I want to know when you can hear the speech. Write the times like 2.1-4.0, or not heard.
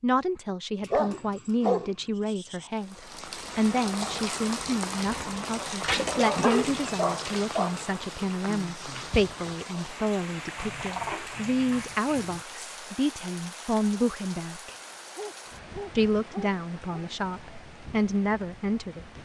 0.0-14.8, 15.9-19.1.